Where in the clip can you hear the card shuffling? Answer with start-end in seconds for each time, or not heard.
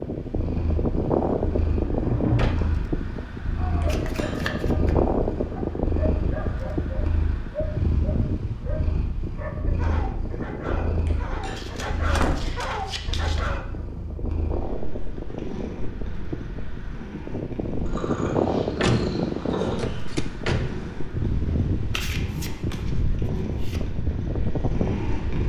3.9-5.0, 11.5-13.6, 21.9-23.9.